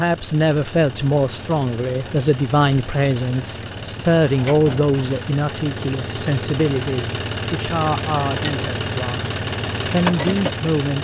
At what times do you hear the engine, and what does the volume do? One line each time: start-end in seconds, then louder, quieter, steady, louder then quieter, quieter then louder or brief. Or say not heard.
0.0-10.9 louder.